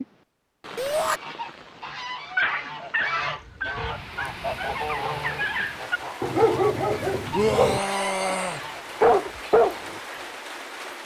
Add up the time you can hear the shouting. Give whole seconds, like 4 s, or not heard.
2 s.